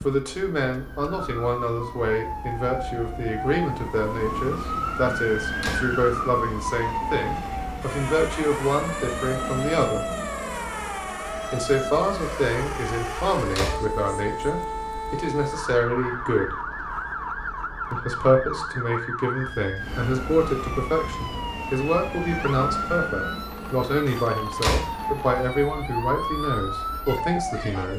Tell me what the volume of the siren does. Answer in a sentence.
The volume of the siren stays about the same.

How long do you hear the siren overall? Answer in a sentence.
You can hear the siren for 28 seconds altogether.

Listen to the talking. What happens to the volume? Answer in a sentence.
The loudness of the talking stays about the same.